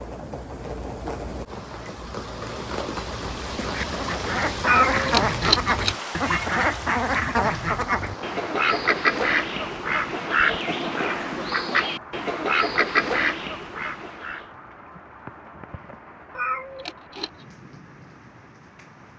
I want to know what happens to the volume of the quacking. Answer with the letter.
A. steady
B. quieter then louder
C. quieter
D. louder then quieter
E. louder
A.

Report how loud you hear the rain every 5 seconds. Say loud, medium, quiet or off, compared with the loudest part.
loud, loud, medium, quiet.